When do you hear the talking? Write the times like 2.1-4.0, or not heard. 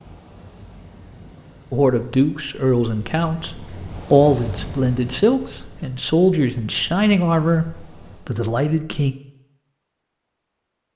1.7-9.2.